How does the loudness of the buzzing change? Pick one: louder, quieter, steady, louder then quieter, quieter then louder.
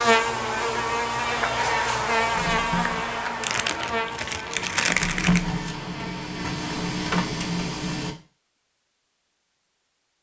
quieter.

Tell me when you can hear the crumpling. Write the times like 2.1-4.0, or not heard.
3.4-5.5.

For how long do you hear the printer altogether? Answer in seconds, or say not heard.
6 s.